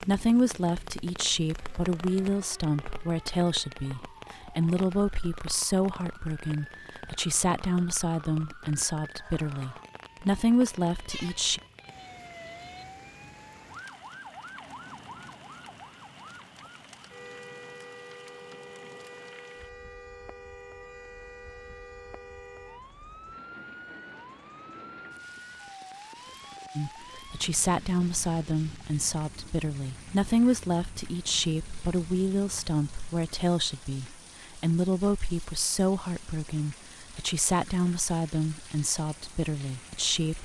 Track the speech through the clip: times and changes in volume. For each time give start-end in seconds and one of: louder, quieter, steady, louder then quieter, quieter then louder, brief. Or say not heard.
0.0-11.6 steady
26.8-40.4 steady.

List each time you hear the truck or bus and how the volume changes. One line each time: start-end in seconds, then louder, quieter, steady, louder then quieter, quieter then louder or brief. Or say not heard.
not heard.